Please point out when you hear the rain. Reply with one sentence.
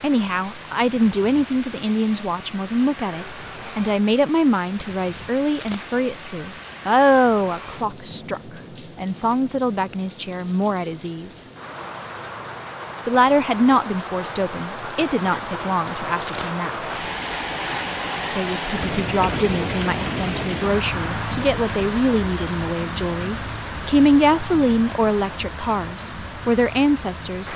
The rain can be heard from 0.0 to 27.5 s.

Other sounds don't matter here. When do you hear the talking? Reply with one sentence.
The talking can be heard from 0.0 to 11.4 s, from 13.1 to 16.9 s and from 18.3 to 27.5 s.